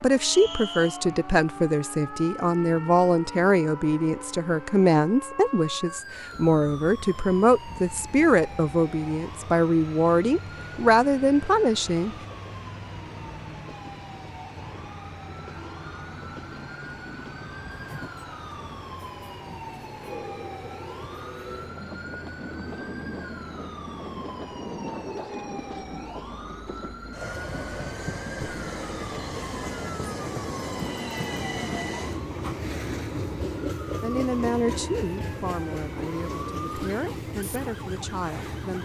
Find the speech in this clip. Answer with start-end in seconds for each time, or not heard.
0.0-12.2, 34.0-38.7.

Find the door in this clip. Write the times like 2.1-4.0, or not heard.
not heard.